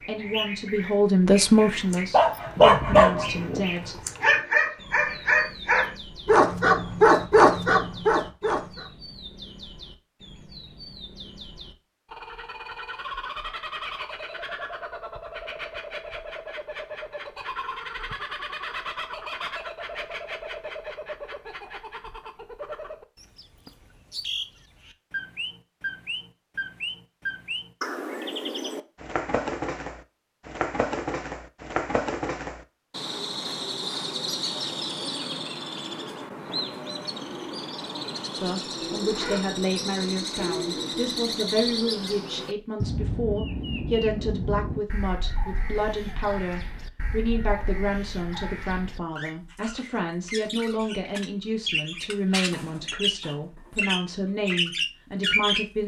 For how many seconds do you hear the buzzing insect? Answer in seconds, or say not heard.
not heard.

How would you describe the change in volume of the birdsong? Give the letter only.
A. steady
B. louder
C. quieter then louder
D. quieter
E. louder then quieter
B.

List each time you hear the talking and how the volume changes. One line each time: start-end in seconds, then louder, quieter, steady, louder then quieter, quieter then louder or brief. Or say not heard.
0.0-4.0 louder then quieter
38.4-55.8 steady.